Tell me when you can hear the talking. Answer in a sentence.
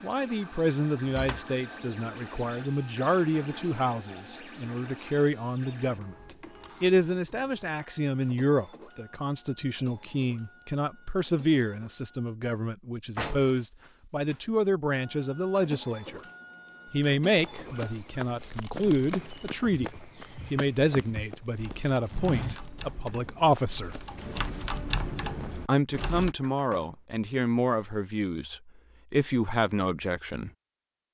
The talking can be heard from 0.0 to 6.2 s, from 6.8 to 16.2 s, from 16.9 to 24.1 s and from 25.6 to 30.5 s.